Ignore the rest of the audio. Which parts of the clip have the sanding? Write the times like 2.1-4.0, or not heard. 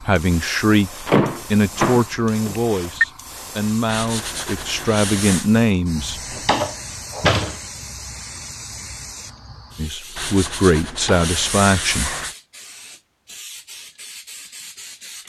3.9-5.5, 10.2-12.3.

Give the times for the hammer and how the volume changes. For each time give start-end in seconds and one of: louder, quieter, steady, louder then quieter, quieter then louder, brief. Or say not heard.
not heard.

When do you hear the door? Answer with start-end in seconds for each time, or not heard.
1.1-3.0, 6.3-7.6, 10.9-11.3.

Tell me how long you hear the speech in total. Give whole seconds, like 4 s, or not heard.
9 s.